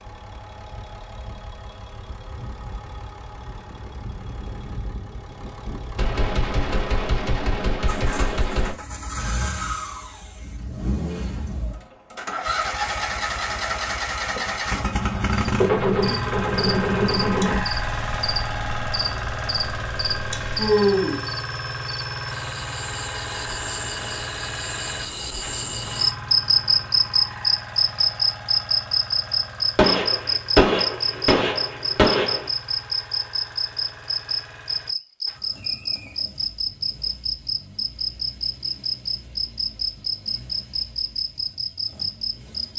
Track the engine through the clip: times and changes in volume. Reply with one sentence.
You can hear the engine from 0.0 to 42.7 s, getting louder then quieter.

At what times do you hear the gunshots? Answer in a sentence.
The gunshots can be heard from 6.0 to 8.8 s, from 15.6 to 17.6 s and from 29.8 to 32.5 s.